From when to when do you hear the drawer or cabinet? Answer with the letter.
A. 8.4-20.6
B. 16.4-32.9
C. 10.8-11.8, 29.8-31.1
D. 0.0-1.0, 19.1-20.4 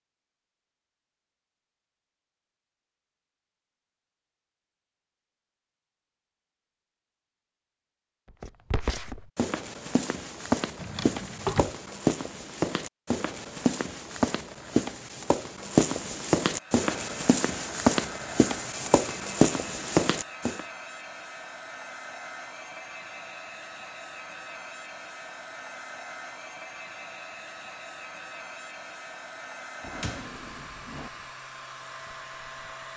C.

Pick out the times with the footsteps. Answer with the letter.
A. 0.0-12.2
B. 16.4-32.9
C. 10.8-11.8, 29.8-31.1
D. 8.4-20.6
D.